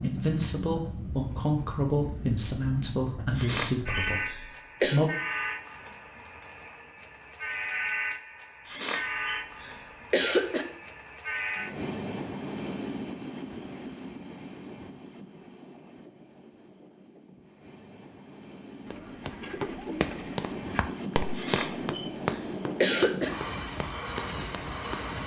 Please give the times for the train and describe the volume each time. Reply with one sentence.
You can hear the train from 0.0 to 25.2 s, getting quieter then louder.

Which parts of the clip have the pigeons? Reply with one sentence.
The pigeons can be heard from 18.9 to 20.9 s.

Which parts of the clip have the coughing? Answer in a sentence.
You can hear the coughing from 3.4 to 5.0 s, from 8.7 to 10.7 s and from 21.4 to 23.3 s.